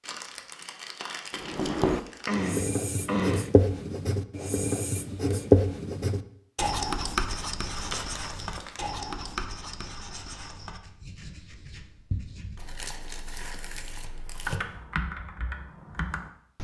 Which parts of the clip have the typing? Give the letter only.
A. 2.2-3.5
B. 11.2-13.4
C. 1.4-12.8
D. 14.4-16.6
D.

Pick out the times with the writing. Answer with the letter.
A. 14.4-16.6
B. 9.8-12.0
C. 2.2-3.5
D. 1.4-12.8
D.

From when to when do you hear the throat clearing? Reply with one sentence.
The throat clearing can be heard from 2.2 to 3.5 s.